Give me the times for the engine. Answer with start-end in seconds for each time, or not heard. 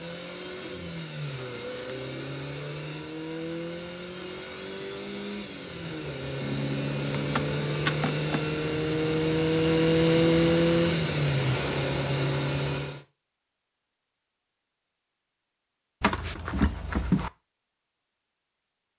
0.0-13.1.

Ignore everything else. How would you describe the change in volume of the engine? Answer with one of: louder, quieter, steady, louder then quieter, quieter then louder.
louder.